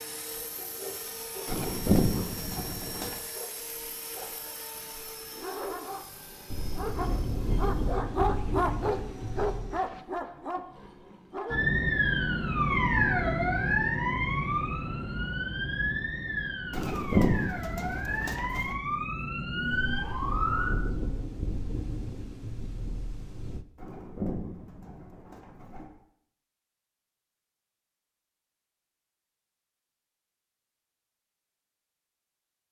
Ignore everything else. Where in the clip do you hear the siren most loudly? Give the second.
13 s.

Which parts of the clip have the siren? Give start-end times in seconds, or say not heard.
11.5-20.7.